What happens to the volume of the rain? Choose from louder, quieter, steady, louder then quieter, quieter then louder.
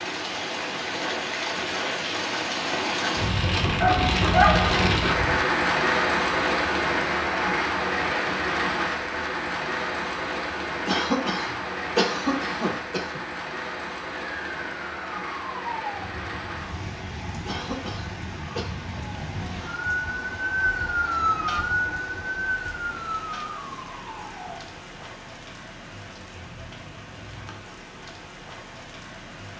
quieter.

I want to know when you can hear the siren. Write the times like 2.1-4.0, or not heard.
14.3-24.6.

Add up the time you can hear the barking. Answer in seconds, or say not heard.
2 s.